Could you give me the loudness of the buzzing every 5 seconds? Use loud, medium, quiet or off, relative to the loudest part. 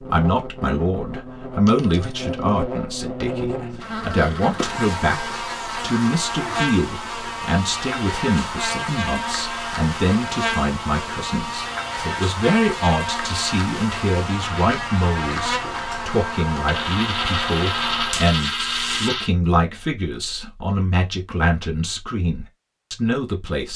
loud, loud, loud, loud, off.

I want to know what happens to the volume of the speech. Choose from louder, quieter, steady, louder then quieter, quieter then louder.
steady.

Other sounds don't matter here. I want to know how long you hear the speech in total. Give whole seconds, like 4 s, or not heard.
24 s.